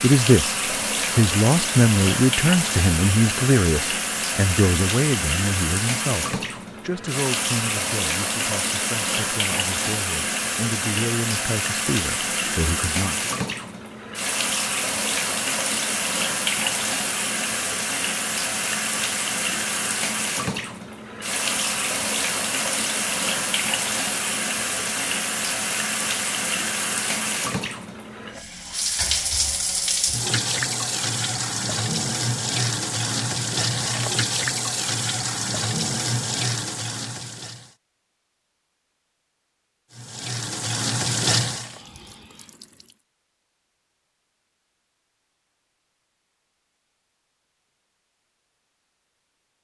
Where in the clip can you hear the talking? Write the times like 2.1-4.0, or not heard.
0.0-13.3.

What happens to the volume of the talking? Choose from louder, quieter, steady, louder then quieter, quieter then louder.
quieter then louder.